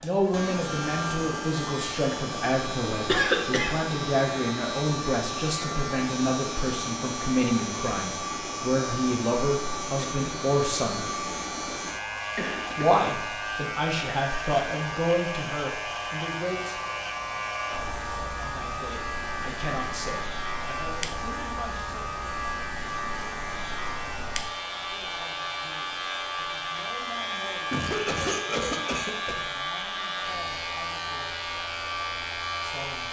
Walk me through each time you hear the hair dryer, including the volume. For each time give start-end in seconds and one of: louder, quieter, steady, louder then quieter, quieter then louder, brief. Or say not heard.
0.0-33.0 steady.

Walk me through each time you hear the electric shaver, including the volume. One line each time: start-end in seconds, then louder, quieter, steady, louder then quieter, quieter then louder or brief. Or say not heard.
0.1-33.0 steady.